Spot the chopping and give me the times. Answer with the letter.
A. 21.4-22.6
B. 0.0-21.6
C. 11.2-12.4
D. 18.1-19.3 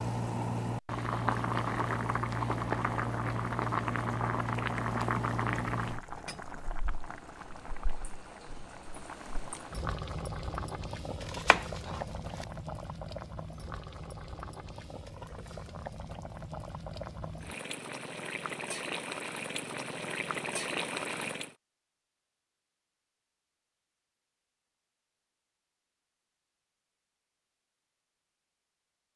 C.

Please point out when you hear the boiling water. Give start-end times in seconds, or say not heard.
0.0-21.6.